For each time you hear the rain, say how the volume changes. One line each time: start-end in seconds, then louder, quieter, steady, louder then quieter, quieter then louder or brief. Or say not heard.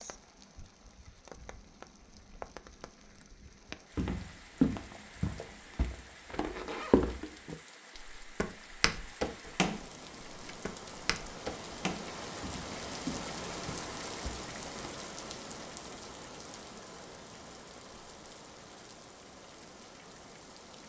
0.0-20.8 louder then quieter.